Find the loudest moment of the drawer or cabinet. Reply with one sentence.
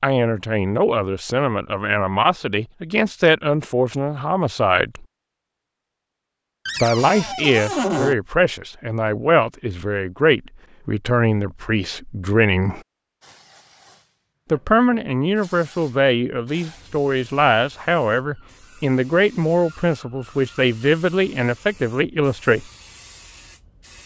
The volume of the drawer or cabinet peaks at 8 seconds.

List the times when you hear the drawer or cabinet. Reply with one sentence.
The drawer or cabinet can be heard from 6.7 to 8.2 s.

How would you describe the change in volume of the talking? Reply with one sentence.
The volume of the talking stays about the same.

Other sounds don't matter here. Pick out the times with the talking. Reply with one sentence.
The talking can be heard from 0.0 to 5.0 s, from 6.8 to 12.8 s and from 14.5 to 22.6 s.